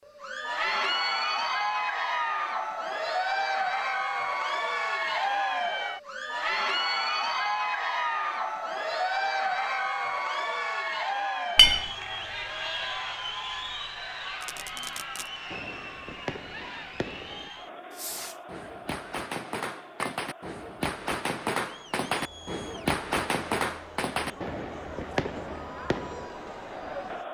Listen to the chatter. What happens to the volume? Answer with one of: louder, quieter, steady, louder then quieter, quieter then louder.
quieter.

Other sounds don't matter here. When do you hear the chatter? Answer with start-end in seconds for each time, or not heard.
0.1-27.2.